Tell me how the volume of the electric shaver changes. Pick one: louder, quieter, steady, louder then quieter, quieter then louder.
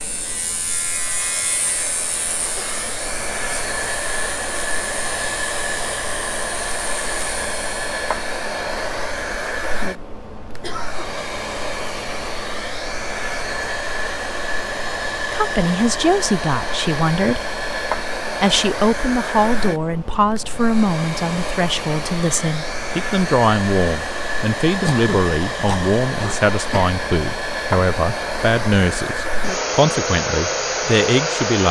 quieter.